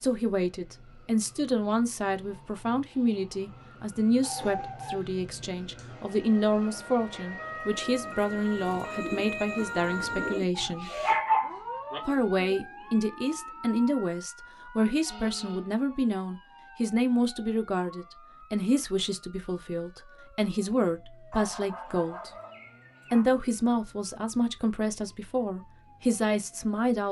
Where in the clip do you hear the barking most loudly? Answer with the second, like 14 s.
11 s.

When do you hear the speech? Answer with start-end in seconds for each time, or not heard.
0.0-10.9, 12.1-22.3, 23.1-27.0.